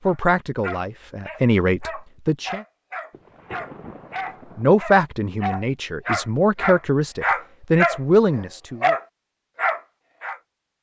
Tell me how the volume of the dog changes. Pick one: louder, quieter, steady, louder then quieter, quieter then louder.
louder.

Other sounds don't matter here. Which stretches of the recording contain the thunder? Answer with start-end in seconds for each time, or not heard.
3.1-4.7.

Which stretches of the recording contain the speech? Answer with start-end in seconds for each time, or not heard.
0.1-2.6, 4.5-8.9.